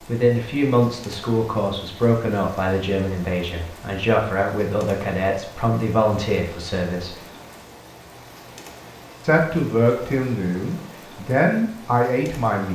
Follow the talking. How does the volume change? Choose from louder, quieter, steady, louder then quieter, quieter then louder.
steady.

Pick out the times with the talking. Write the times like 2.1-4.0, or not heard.
0.0-7.2, 9.2-12.6.